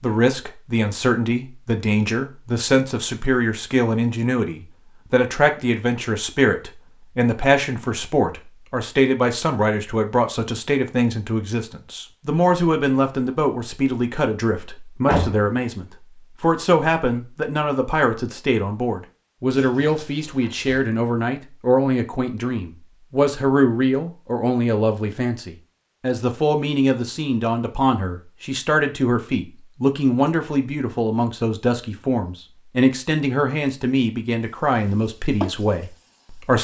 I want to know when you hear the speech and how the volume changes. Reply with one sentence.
You can hear the speech from 0.0 to 36.5 s, at a steady volume.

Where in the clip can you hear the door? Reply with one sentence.
The door can be heard from 15.1 to 15.6 s and from 19.6 to 20.9 s.